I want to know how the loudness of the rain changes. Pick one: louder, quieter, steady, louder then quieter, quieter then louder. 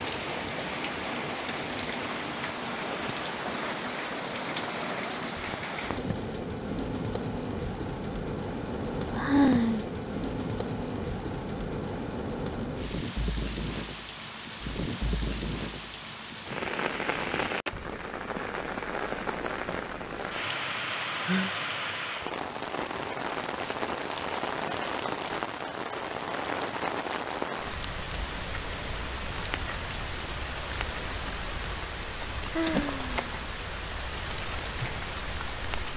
steady.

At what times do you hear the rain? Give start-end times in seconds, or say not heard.
0.0-35.9.